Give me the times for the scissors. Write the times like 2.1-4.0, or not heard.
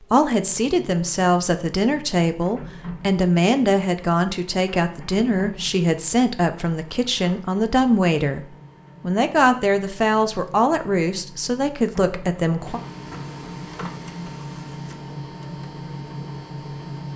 not heard.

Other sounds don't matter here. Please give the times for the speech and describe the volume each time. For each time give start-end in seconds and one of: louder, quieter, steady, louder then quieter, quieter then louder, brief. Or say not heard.
0.1-12.8 steady.